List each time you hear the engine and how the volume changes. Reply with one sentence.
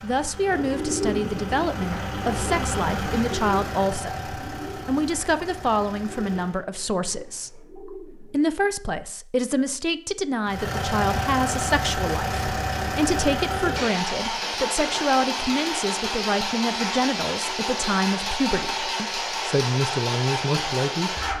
You can hear the engine from 0.0 to 6.7 s, getting louder then quieter; and from 10.4 to 21.3 s, at a steady volume.